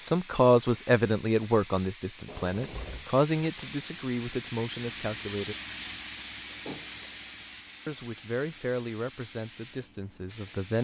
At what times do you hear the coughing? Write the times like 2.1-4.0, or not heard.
not heard.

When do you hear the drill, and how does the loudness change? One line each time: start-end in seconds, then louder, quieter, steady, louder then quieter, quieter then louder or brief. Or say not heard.
not heard.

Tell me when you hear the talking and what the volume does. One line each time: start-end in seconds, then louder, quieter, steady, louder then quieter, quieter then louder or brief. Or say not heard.
0.0-5.5 quieter
7.8-10.7 brief.